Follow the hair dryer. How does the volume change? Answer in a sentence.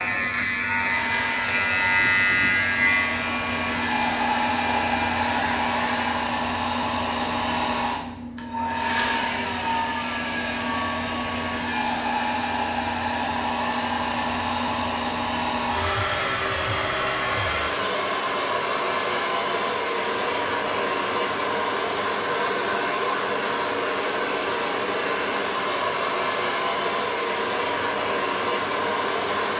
The volume of the hair dryer stays about the same.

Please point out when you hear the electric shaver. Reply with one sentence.
You can hear the electric shaver from 0.0 to 6.3 s.